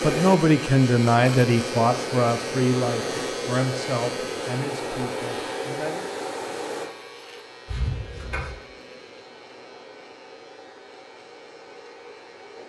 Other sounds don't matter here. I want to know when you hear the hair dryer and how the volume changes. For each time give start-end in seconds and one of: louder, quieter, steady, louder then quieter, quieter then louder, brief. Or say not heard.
0.0-12.6 quieter.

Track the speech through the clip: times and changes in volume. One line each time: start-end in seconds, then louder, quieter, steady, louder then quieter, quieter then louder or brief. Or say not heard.
0.0-6.1 quieter.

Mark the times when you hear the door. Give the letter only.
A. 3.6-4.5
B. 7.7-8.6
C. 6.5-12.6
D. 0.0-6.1
B.